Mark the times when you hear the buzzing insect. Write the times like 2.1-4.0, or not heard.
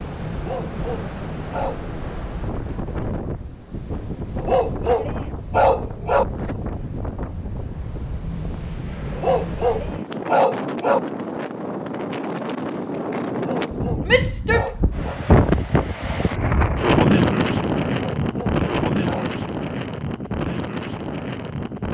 not heard.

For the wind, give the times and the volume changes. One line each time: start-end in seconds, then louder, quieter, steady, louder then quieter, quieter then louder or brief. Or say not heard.
0.0-21.8 louder.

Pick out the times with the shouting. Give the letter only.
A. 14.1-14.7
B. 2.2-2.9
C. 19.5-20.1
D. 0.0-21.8
A.